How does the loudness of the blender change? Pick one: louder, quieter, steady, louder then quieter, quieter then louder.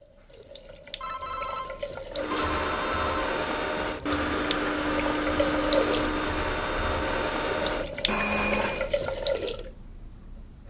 steady.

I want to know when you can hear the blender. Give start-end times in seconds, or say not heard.
2.1-8.9.